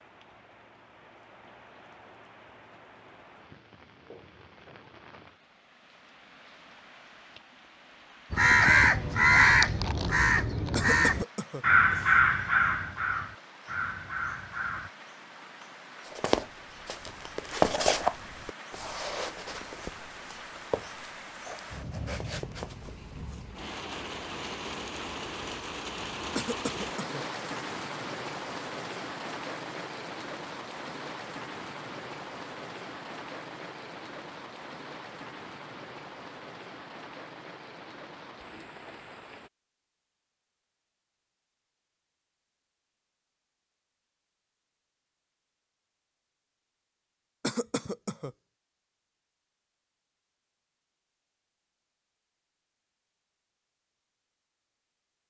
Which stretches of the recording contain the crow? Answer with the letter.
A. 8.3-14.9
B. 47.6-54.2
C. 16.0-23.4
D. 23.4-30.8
A.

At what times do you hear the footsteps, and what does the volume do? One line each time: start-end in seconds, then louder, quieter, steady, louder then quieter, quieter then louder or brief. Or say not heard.
16.0-23.4 quieter.